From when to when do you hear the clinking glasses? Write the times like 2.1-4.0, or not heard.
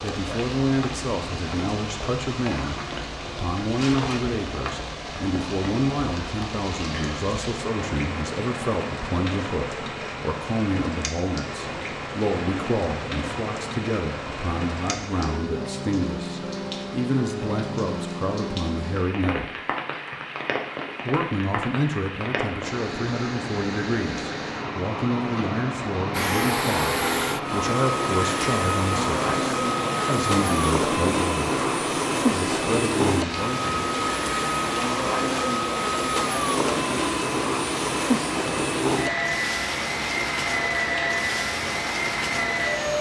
not heard.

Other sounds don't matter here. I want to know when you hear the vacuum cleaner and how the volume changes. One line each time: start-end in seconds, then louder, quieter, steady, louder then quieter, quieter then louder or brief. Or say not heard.
26.1-42.9 steady.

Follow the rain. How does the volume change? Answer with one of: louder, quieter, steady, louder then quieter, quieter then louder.
steady.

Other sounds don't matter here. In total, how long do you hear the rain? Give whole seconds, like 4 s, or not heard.
43 s.